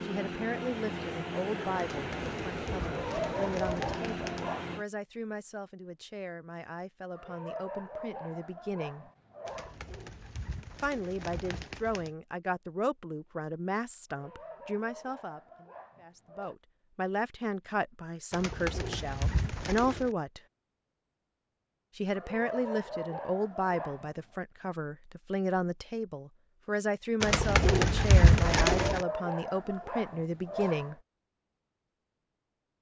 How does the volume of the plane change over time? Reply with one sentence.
The volume of the plane stays about the same.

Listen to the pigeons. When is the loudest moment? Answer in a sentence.
The loudest moment of the pigeons is at 28 seconds.